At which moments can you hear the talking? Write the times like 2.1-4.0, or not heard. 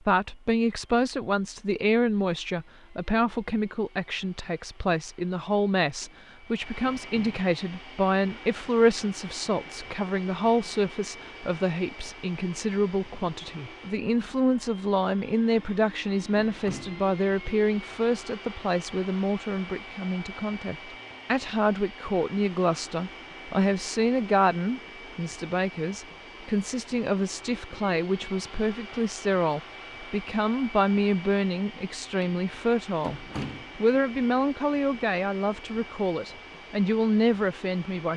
0.1-38.1.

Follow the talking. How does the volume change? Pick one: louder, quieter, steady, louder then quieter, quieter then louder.
steady.